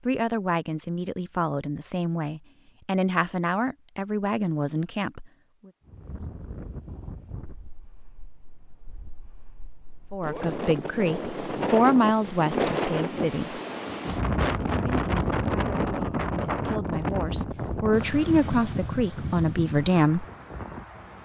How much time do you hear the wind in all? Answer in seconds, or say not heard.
15 s.